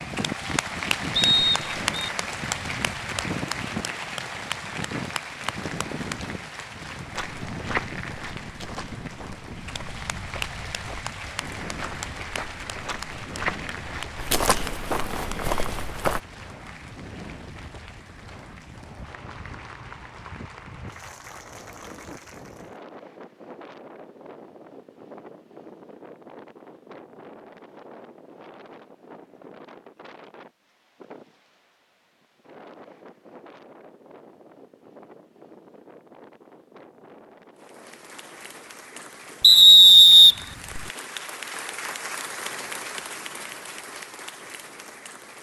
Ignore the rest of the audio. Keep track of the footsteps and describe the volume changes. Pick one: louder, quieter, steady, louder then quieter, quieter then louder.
quieter then louder.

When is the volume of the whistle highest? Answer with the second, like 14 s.
40 s.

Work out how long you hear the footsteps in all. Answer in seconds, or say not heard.
9 s.